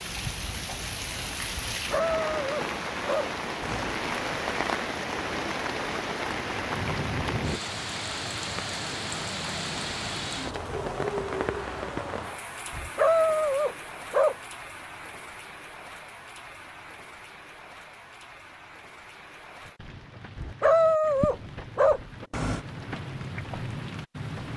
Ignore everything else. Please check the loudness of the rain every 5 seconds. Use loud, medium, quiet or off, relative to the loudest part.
loud, loud, loud, quiet, medium.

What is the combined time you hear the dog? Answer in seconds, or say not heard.
6 s.